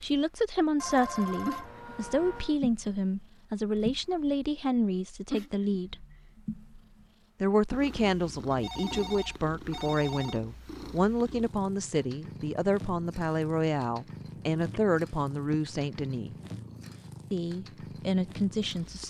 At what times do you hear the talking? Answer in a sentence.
The talking can be heard from 0.0 to 6.0 s, from 7.4 to 16.4 s and from 17.3 to 19.0 s.